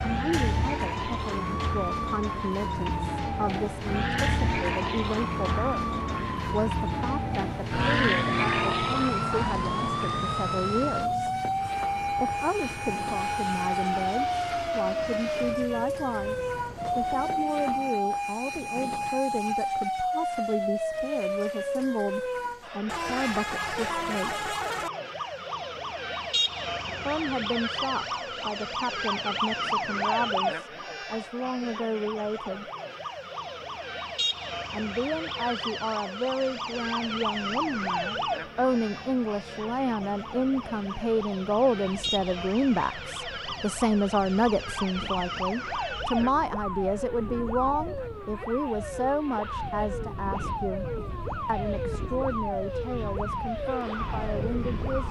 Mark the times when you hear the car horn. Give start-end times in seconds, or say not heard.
22.9-24.9.